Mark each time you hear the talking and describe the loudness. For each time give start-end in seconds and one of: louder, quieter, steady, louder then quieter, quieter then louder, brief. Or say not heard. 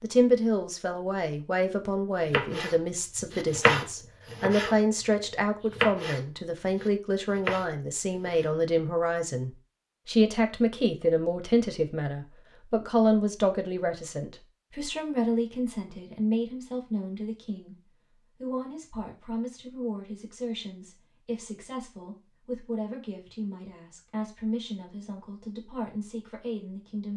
0.0-27.1 quieter.